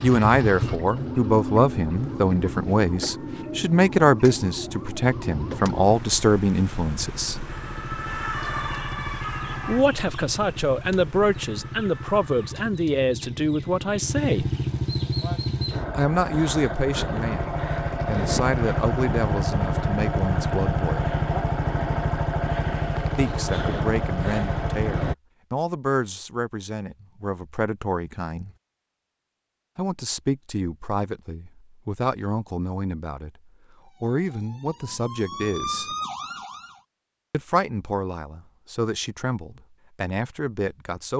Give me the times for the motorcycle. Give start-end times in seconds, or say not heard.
0.0-2.8, 5.0-25.1.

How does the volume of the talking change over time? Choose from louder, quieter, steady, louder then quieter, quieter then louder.
quieter.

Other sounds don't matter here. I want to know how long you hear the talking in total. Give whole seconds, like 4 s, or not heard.
33 s.